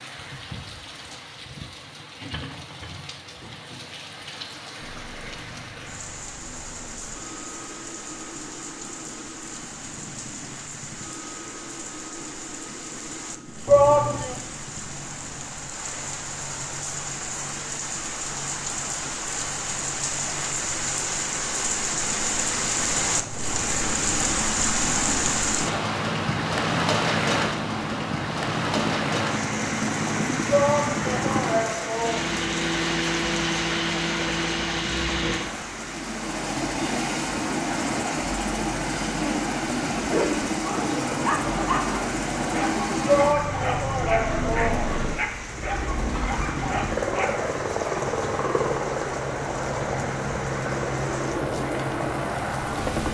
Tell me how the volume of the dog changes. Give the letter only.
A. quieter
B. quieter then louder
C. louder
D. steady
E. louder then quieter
D.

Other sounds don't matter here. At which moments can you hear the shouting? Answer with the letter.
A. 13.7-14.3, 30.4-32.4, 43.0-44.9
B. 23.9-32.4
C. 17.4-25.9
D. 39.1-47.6
A.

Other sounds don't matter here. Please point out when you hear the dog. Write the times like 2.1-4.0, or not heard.
39.1-47.6.